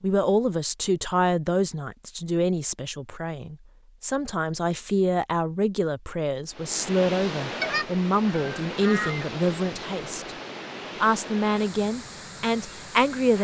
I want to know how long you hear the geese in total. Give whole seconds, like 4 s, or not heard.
2 s.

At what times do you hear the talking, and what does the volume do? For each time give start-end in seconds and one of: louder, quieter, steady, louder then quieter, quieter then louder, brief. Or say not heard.
0.0-10.3 steady
11.0-13.4 brief.